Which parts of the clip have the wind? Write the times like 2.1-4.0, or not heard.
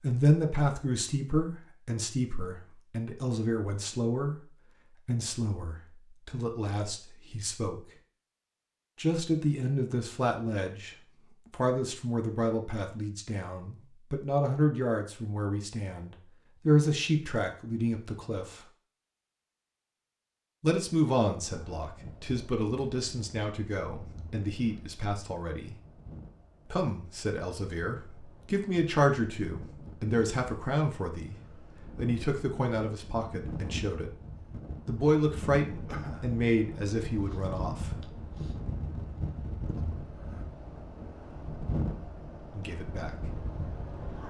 21.4-44.2.